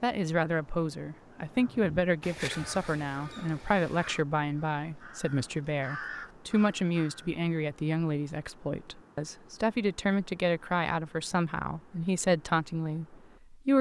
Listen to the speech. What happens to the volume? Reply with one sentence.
The loudness of the speech stays about the same.